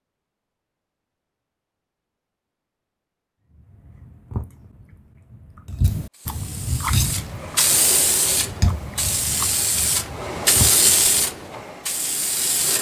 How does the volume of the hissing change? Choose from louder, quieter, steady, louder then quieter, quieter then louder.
louder then quieter.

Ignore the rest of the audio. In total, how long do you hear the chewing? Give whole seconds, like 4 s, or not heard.
8 s.